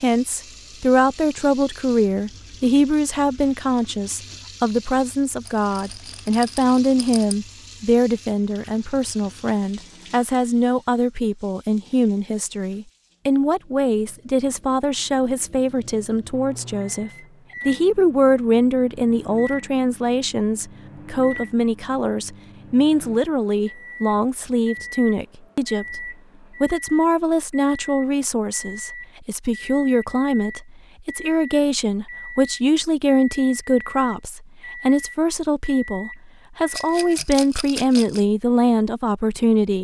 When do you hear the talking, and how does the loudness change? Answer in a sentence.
The talking can be heard from 0.0 to 39.7 s, at a steady volume.